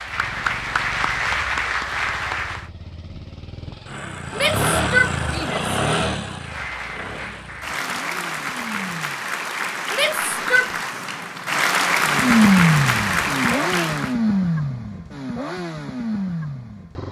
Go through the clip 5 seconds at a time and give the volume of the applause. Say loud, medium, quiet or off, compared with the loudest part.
loud, medium, loud, off.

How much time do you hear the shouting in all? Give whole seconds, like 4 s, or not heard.
2 s.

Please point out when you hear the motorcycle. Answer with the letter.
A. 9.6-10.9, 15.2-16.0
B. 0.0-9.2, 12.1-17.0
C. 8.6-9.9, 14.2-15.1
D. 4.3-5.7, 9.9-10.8
B.